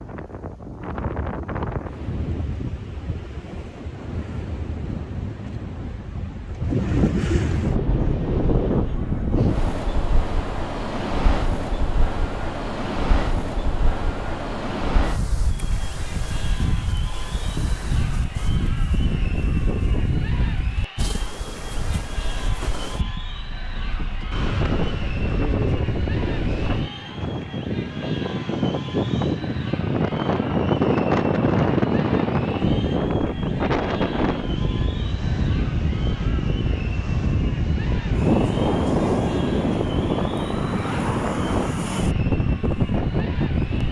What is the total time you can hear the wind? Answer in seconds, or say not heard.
44 s.